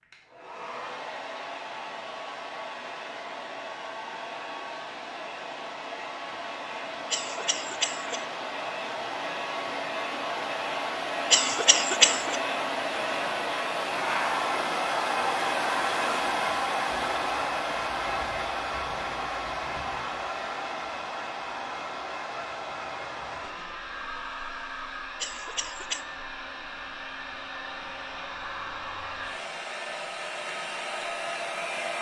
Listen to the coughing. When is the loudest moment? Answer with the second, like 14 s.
12 s.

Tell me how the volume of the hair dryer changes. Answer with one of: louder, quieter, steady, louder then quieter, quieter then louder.
louder then quieter.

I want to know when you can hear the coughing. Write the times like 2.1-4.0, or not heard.
7.1-8.2, 11.3-12.4, 25.2-26.1.